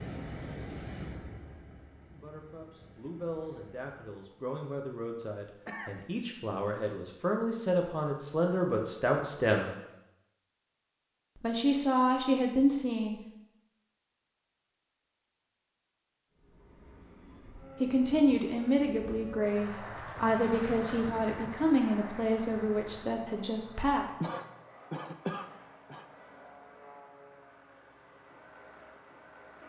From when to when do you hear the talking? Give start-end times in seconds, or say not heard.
2.1-9.7, 11.4-13.2, 17.8-24.1.